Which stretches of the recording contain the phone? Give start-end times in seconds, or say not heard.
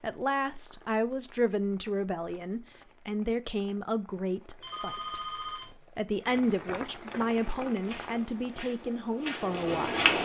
4.6-5.8.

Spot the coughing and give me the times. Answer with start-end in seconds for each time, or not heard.
not heard.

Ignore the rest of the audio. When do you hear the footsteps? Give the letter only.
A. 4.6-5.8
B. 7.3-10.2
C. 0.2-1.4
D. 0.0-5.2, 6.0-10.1
B.